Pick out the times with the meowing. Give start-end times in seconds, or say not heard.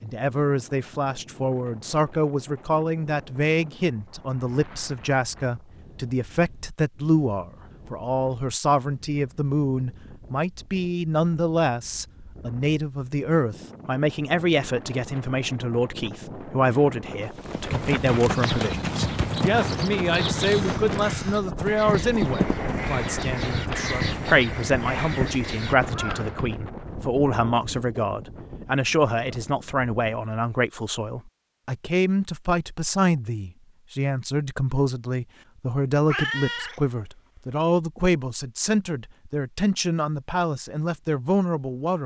36.0-37.5.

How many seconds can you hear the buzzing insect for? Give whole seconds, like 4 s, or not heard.
not heard.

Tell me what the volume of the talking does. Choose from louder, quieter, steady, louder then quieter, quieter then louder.
steady.